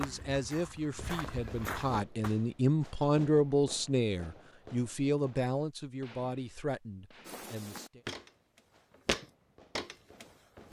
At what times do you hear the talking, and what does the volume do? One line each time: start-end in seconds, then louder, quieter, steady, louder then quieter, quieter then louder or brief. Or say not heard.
0.0-8.0 louder then quieter.